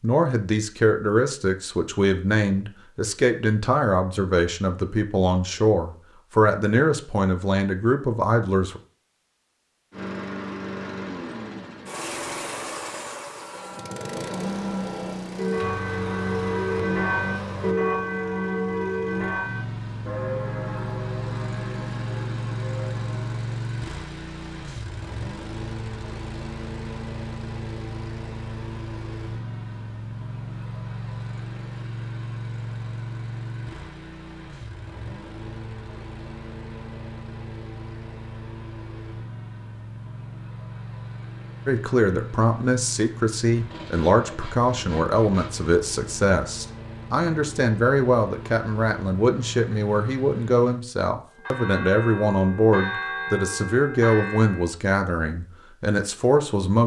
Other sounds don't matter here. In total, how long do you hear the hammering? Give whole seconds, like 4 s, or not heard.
not heard.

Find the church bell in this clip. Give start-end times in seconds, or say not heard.
13.3-23.6, 51.4-54.7.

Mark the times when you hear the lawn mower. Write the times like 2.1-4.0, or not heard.
9.9-50.8.